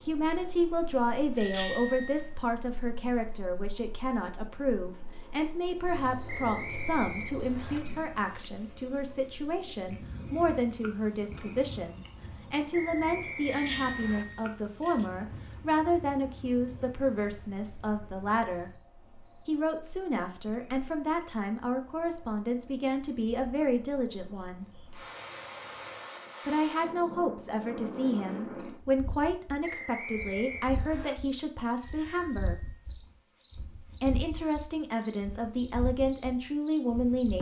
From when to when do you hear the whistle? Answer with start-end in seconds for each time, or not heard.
6.2-7.8, 12.7-14.2, 29.6-31.1.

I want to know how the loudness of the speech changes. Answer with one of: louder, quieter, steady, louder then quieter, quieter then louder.
steady.